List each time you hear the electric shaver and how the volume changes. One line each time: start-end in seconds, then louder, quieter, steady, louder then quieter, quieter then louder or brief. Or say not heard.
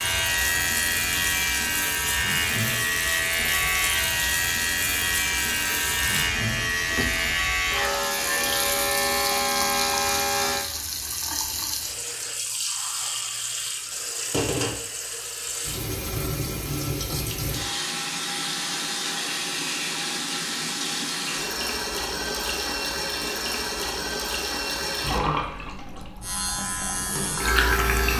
0.0-10.7 steady
26.2-28.1 brief.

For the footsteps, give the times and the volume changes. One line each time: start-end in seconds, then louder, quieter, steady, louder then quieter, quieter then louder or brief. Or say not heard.
not heard.